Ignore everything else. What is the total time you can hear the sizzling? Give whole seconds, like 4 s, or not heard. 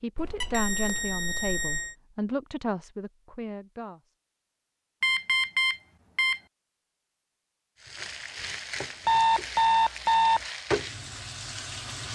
4 s.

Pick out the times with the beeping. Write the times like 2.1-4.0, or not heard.
0.1-1.9, 5.0-6.4, 9.1-10.4.